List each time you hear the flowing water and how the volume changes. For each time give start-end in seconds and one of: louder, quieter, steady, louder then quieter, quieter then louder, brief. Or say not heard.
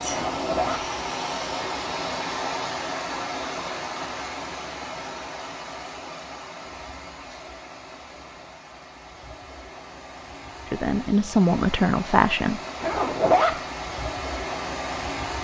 0.0-15.3 quieter then louder.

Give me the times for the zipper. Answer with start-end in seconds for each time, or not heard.
0.1-0.8, 12.8-13.6.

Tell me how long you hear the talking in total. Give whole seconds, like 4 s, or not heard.
2 s.